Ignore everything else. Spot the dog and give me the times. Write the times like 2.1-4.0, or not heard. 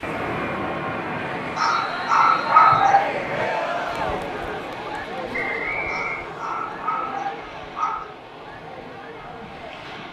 1.6-3.1, 5.8-8.1.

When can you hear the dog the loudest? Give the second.
3 s.